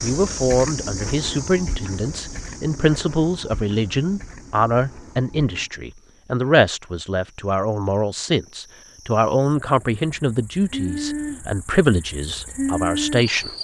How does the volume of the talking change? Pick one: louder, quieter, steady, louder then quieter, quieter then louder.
steady.